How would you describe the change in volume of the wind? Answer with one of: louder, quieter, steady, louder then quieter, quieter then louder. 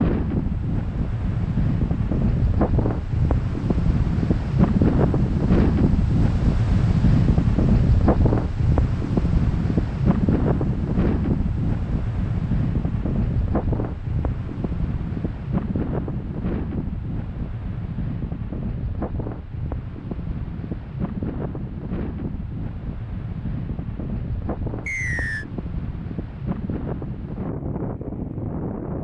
quieter.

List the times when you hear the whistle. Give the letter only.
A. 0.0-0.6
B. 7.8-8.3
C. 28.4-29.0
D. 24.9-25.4
D.